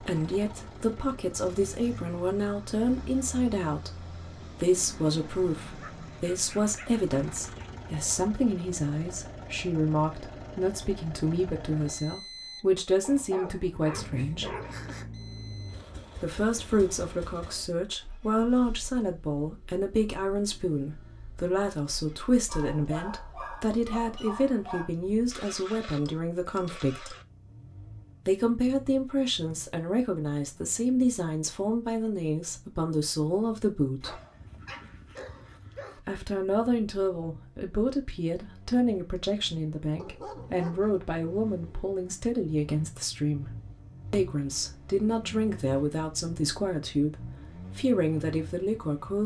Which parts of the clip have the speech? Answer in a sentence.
You can hear the speech from 0.0 to 14.6 s, from 16.2 to 27.1 s, from 28.2 to 34.2 s and from 36.0 to 49.2 s.